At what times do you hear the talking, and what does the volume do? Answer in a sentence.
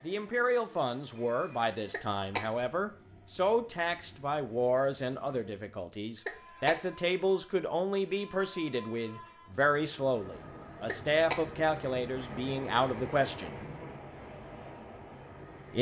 The talking can be heard from 0.0 to 13.6 s, at a steady volume.